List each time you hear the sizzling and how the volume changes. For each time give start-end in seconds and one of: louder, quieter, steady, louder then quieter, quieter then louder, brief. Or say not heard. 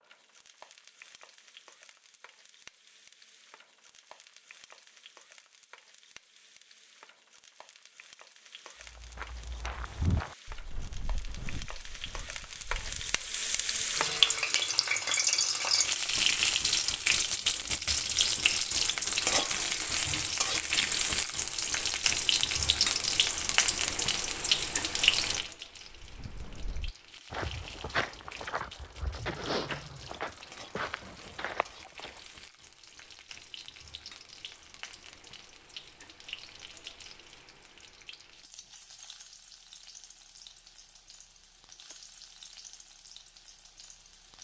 0.0-44.3 louder then quieter.